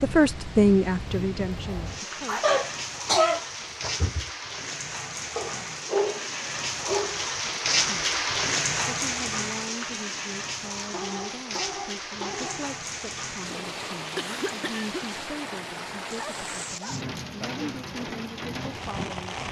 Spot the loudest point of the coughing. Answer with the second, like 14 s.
3 s.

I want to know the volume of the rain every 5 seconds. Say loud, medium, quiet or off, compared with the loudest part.
medium, loud, medium, medium.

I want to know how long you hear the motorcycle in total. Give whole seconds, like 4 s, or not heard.
not heard.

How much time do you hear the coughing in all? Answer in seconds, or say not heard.
3 s.